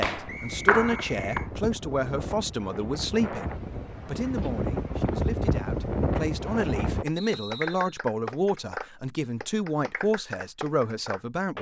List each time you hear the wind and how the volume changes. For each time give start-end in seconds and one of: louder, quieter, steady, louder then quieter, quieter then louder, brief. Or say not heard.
0.1-7.0 louder.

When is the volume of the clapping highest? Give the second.
1 s.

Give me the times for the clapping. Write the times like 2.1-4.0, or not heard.
0.0-1.5, 7.0-11.5.